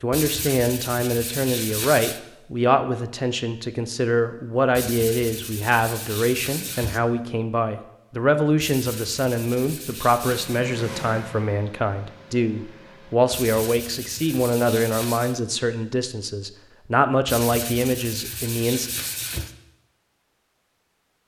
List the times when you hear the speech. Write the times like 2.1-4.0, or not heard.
0.0-18.9.